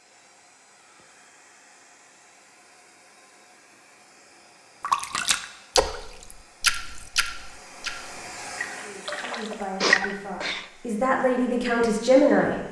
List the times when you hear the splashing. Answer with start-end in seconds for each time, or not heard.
4.8-10.2.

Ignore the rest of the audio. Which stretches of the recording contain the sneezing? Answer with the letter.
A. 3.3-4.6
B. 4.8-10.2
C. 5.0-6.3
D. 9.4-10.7
D.